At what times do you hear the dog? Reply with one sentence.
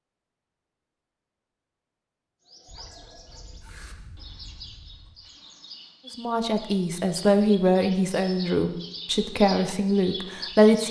The dog can be heard from 2.6 to 5.3 s.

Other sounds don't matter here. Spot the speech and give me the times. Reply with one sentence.
The speech can be heard from 6.2 to 10.8 s.